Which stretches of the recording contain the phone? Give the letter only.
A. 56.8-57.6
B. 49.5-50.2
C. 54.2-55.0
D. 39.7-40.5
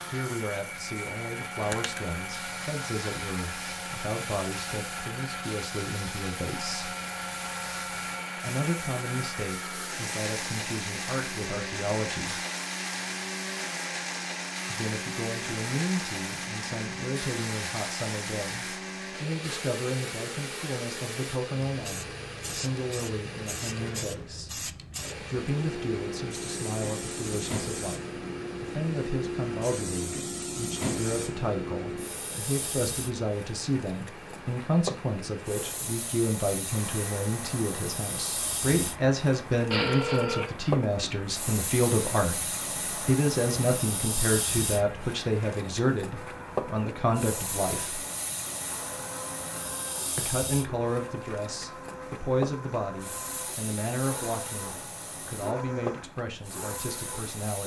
D.